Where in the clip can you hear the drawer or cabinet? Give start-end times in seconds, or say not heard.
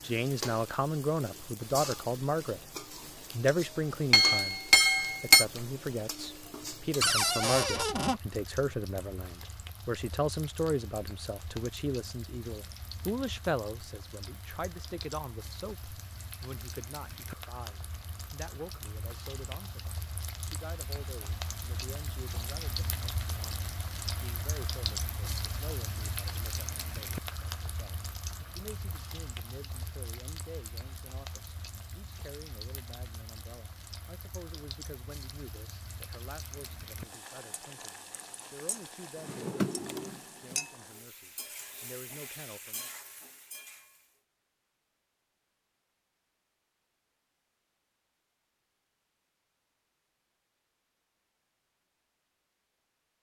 7.0-8.2, 39.1-40.6.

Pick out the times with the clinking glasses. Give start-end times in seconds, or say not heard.
4.1-5.5.